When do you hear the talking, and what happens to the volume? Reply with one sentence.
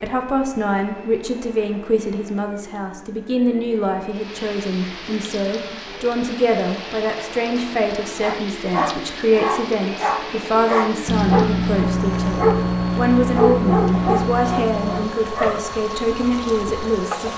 You can hear the talking from 0.0 to 17.3 s, at a steady volume.